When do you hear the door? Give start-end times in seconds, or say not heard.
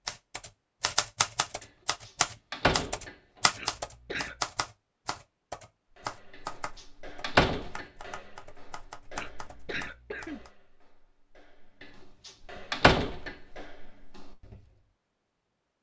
2.0-3.1, 7.2-7.8, 12.2-13.3.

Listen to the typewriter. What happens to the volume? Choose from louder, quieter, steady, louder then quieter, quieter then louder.
quieter.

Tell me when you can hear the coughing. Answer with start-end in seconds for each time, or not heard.
3.5-4.4, 9.2-10.5.